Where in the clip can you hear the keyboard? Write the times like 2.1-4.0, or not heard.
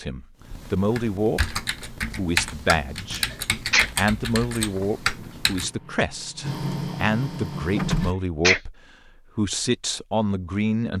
0.5-5.7.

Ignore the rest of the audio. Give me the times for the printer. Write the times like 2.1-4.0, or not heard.
4.7-8.2.